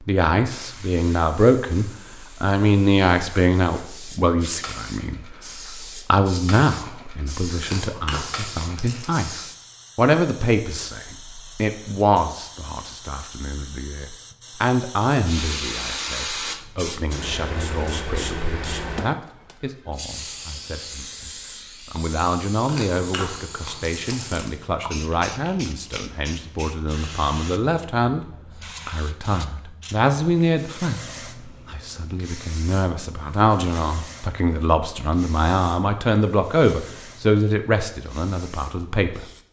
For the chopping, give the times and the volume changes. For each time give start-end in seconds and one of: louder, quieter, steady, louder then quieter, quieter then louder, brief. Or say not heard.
not heard.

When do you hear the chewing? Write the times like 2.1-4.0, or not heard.
7.6-9.1, 22.6-24.6.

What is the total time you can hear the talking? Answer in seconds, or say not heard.
38 s.